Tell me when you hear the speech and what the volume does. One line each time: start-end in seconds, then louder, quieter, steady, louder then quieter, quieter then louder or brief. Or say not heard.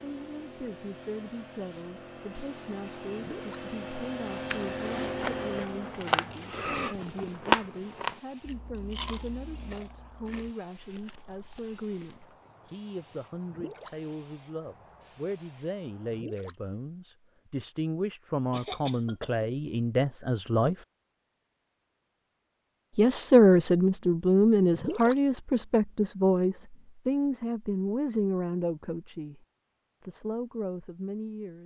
0.0-20.9 louder
22.9-29.4 quieter
30.0-31.6 brief.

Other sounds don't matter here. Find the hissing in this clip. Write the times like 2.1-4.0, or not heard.
0.0-16.2.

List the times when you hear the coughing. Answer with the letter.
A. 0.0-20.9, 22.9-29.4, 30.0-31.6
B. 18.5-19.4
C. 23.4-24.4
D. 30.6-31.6
B.